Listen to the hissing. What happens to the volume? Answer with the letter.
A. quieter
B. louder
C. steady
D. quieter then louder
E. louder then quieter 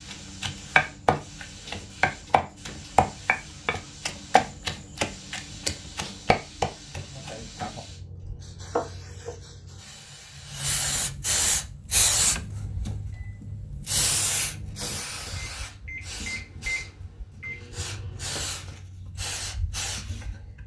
E.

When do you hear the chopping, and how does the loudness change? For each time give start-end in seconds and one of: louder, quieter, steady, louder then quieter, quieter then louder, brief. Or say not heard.
0.1-9.3 quieter.